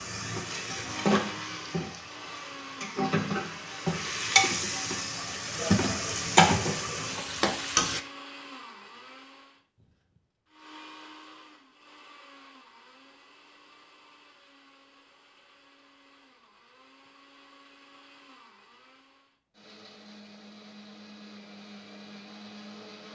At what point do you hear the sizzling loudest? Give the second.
6 s.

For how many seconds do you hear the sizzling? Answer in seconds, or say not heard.
8 s.